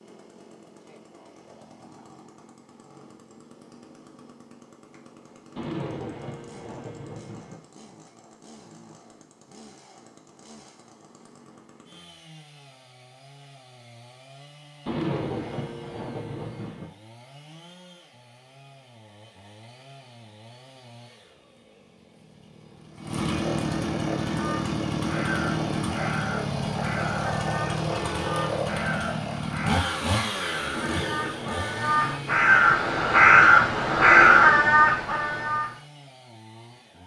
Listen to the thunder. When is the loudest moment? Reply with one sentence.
The volume of the thunder peaks at 15 seconds.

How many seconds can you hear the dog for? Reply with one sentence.
The dog can't be heard in this clip.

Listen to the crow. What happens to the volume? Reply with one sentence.
The volume of the crow goes up.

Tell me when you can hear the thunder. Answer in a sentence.
You can hear the thunder from 5.5 to 7.5 s, from 14.8 to 16.9 s and from 30.7 to 32.8 s.